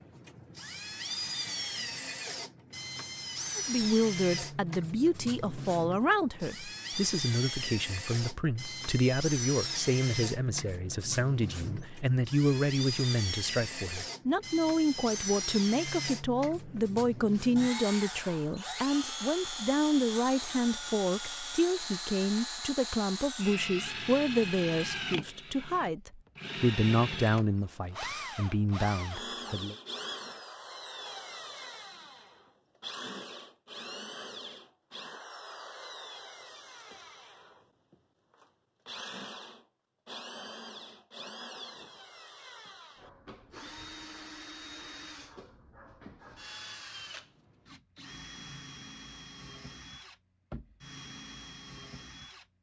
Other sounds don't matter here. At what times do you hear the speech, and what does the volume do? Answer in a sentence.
You can hear the speech from 3.5 to 29.8 s, at a steady volume.